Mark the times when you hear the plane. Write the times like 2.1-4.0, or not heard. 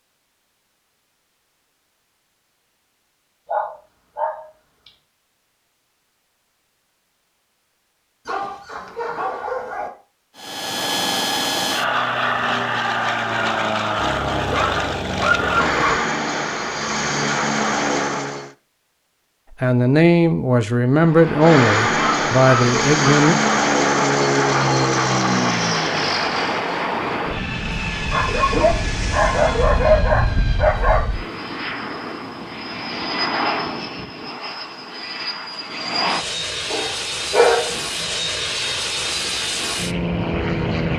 10.3-18.5, 21.1-40.9.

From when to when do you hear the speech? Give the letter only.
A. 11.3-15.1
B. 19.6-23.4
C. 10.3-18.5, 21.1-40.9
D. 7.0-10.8
B.